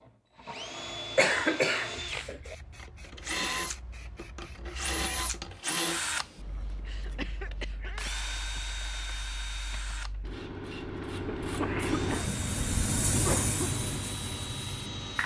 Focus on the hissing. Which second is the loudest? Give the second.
13 s.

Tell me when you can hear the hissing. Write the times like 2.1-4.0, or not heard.
1.9-15.2.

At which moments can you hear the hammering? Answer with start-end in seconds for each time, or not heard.
not heard.